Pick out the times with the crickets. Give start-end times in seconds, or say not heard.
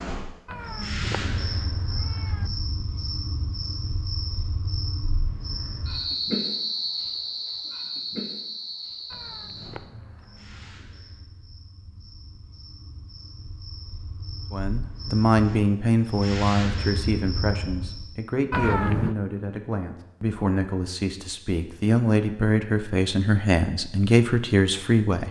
0.0-18.1.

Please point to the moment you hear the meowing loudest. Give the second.
19 s.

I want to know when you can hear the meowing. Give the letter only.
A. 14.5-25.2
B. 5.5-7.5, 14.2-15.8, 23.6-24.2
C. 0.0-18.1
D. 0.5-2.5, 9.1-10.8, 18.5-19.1
D.